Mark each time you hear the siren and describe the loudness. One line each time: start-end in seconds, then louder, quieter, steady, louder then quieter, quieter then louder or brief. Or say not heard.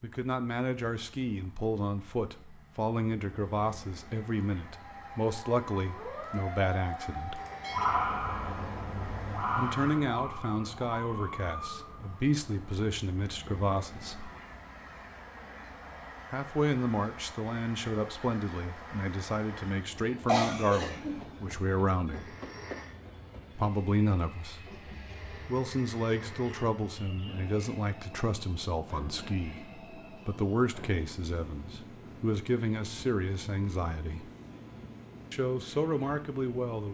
4.7-12.9 louder then quieter.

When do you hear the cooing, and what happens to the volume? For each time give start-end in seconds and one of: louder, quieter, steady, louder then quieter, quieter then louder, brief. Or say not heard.
not heard.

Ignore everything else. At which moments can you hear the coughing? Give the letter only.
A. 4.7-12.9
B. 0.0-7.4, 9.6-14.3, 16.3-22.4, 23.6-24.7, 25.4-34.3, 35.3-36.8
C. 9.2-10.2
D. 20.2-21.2
D.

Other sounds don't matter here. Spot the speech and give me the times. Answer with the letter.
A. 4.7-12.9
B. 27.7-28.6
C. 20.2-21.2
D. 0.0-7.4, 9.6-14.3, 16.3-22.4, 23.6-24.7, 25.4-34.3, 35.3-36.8
D.